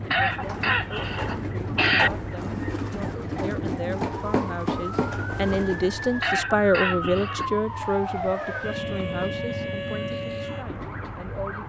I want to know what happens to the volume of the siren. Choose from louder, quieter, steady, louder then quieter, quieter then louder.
louder.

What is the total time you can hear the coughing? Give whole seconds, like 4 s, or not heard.
3 s.